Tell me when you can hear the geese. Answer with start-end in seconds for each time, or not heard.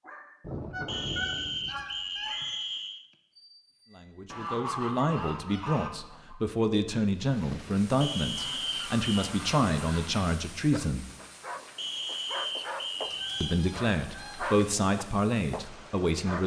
0.4-2.5, 4.3-6.3, 8.3-10.2, 13.0-14.6.